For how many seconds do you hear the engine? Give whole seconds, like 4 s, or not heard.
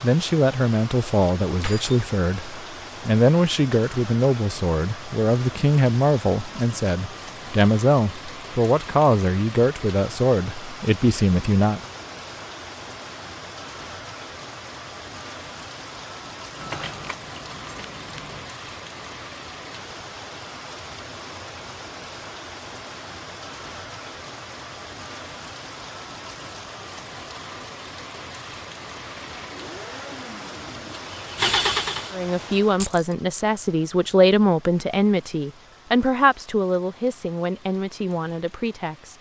3 s.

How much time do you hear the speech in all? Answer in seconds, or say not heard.
19 s.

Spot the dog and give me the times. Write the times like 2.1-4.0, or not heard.
not heard.